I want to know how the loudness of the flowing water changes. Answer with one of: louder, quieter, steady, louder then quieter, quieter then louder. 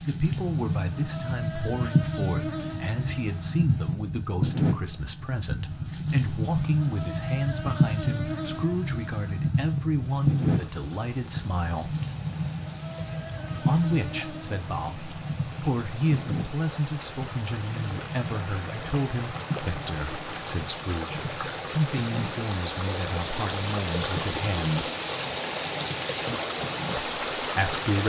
louder.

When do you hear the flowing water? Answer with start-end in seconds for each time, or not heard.
9.8-28.0.